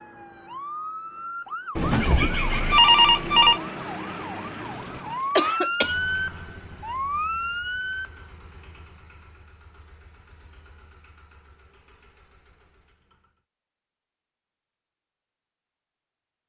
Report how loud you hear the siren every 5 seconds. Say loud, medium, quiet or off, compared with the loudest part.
medium, loud, off, off.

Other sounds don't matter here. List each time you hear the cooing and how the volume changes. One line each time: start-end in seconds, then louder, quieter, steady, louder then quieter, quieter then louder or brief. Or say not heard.
not heard.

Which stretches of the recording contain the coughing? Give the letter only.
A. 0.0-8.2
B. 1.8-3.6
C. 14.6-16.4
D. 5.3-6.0
D.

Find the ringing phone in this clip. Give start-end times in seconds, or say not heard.
1.8-3.6.